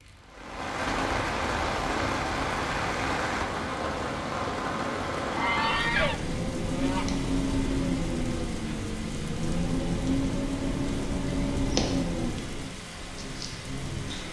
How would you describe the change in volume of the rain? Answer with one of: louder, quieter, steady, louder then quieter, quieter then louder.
steady.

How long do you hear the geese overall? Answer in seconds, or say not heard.
2 s.